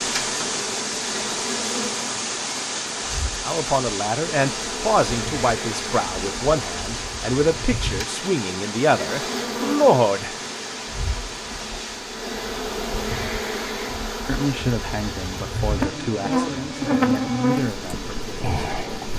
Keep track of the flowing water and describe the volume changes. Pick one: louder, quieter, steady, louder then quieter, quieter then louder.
quieter.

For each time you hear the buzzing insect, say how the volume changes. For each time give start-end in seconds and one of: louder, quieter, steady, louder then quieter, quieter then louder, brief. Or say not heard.
0.0-19.1 louder.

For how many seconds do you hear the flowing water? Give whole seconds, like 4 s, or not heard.
19 s.